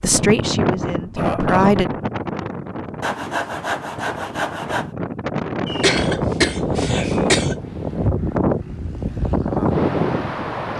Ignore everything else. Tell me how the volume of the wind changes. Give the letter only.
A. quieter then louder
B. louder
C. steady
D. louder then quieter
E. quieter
A.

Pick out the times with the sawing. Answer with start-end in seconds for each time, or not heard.
3.0-4.9.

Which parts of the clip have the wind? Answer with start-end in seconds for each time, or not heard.
0.0-10.7.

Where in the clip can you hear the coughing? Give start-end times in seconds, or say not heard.
0.9-1.9, 5.7-7.5.